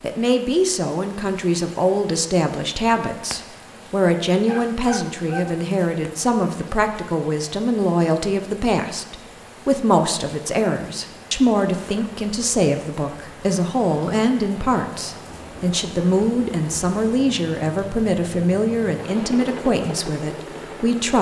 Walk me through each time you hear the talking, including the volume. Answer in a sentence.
You can hear the talking from 0.0 to 21.1 s, at a steady volume.